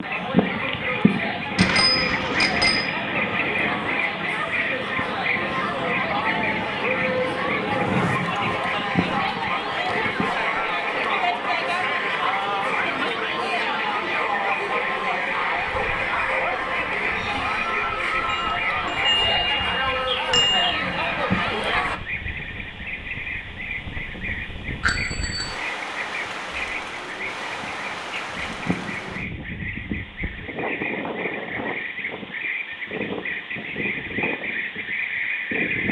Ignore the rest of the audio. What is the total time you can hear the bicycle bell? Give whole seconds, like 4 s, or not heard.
5 s.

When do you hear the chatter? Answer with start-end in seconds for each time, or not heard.
0.0-22.0.